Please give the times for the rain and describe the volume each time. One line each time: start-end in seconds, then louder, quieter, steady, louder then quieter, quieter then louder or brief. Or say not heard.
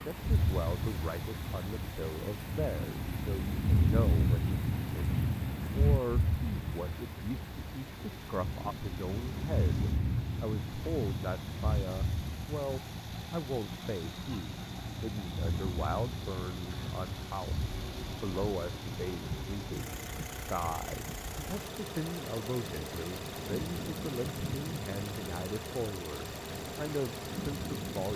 0.0-28.1 quieter.